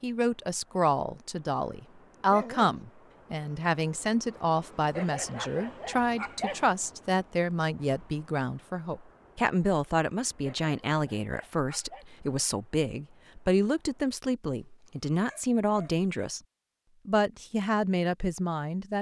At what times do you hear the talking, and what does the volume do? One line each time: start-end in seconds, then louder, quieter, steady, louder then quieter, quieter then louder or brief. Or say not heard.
0.0-16.4 steady
17.1-18.9 brief.